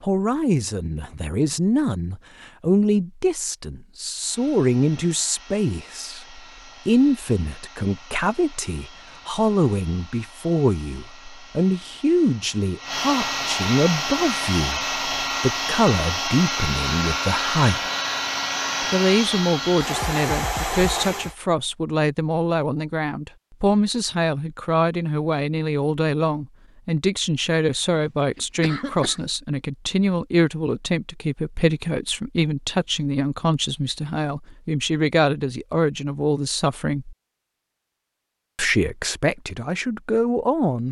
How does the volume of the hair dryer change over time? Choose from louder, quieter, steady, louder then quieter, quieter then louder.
louder.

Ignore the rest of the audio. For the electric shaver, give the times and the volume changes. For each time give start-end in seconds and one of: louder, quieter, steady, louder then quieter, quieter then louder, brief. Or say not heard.
not heard.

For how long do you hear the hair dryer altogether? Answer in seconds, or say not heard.
17 s.